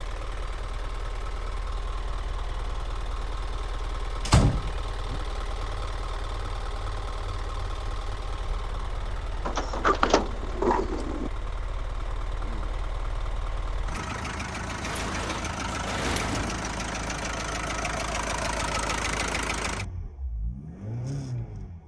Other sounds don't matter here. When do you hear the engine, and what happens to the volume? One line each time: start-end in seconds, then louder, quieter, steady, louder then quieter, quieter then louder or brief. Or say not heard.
0.0-21.8 louder.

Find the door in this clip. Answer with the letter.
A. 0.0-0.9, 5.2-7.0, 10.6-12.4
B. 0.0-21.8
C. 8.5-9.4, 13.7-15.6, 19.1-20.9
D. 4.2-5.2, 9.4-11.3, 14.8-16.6
D.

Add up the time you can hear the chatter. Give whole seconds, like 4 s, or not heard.
not heard.